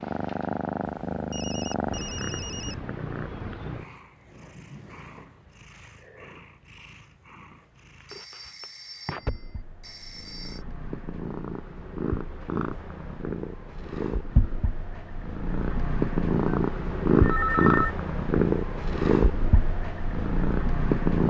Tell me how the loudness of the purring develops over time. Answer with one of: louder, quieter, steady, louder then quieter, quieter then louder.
quieter then louder.